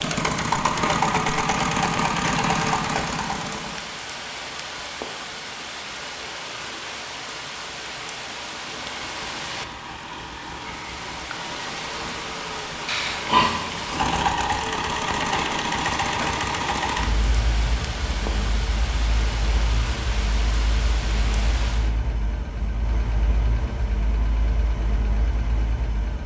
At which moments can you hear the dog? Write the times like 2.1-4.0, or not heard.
not heard.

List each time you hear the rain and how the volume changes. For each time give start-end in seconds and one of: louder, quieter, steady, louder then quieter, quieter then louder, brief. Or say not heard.
0.0-21.9 steady.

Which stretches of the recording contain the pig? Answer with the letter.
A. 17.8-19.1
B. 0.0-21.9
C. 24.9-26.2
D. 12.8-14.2
D.